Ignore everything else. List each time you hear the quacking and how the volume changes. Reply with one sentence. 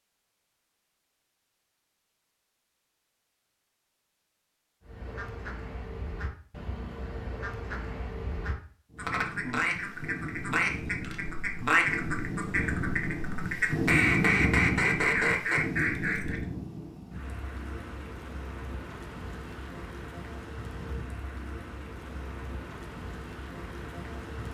You can hear the quacking from 4.8 to 16.4 s, getting louder.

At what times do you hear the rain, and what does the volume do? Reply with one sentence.
You can hear the rain from 8.9 to 24.4 s, getting louder then quieter.